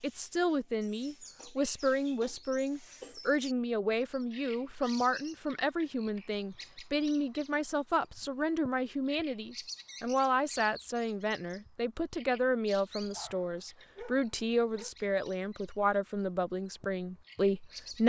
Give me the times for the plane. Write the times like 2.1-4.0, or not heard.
not heard.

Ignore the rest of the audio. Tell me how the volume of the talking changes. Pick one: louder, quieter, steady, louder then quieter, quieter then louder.
steady.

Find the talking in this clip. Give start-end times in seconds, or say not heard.
0.0-18.0.